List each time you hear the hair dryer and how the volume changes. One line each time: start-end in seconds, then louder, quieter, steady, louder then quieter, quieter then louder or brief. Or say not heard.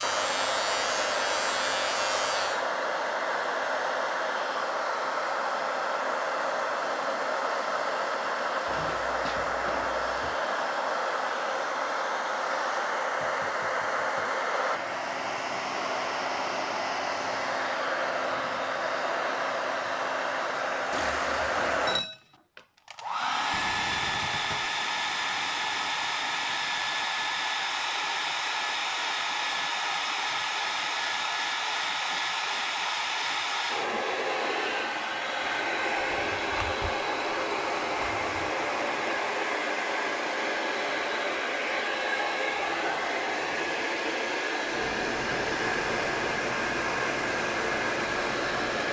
0.0-48.8 steady.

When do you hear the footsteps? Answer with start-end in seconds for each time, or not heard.
not heard.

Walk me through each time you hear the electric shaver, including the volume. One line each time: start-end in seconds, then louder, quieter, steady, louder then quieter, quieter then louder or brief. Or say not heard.
0.0-2.7 brief
44.6-48.8 steady.